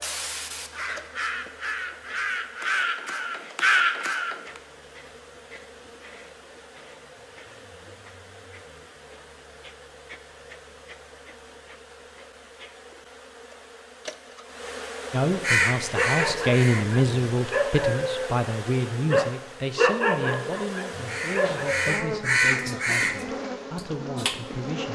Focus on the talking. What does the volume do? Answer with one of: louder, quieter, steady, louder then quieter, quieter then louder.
quieter.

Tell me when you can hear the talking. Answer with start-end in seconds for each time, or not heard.
15.1-24.9.